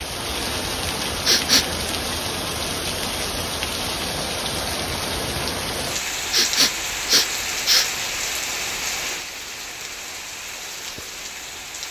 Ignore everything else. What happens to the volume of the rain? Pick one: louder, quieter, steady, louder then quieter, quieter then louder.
quieter.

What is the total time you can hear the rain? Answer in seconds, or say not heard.
12 s.